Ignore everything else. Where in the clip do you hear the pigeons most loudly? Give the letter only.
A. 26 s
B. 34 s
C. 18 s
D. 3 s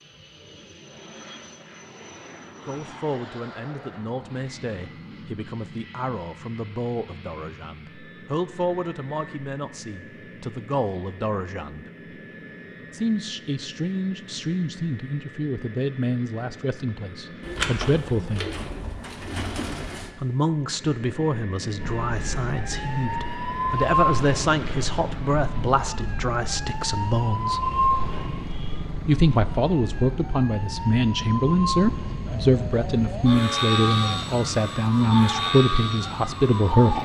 C.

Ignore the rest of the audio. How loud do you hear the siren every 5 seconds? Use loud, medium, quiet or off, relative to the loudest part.
off, off, off, off, loud, loud, medium, loud.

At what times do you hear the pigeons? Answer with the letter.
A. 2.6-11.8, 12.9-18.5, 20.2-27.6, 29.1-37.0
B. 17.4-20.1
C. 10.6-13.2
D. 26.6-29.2
B.